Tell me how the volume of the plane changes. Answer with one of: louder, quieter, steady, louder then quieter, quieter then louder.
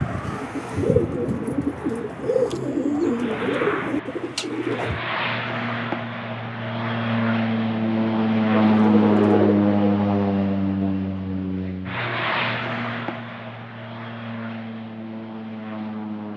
louder then quieter.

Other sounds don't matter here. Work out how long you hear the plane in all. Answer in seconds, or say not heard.
16 s.